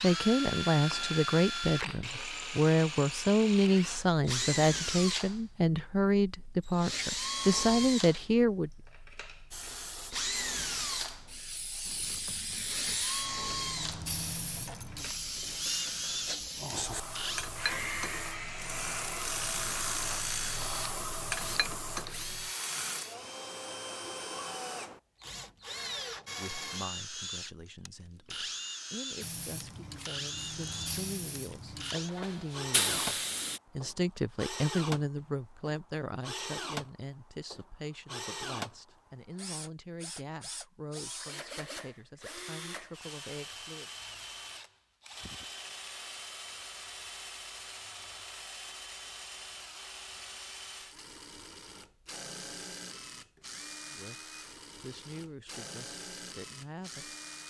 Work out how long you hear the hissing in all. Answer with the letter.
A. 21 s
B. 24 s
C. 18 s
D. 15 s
C.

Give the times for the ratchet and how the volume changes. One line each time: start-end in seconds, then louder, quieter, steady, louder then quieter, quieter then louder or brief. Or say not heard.
11.8-23.1 louder.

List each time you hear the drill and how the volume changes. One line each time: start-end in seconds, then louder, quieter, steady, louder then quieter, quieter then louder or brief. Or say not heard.
0.0-57.4 quieter.